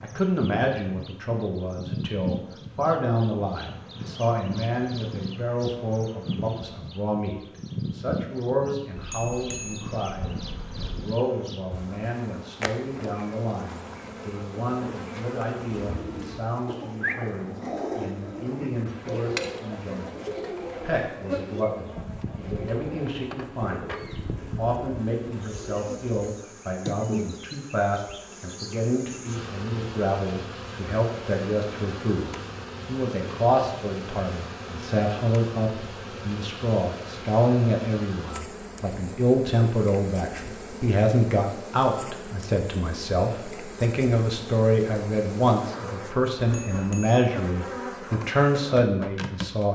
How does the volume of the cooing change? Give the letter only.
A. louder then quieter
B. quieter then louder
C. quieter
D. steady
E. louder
C.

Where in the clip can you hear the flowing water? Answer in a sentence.
You can't hear the flowing water here.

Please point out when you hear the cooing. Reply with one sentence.
The cooing can be heard from 15.7 to 26.1 s.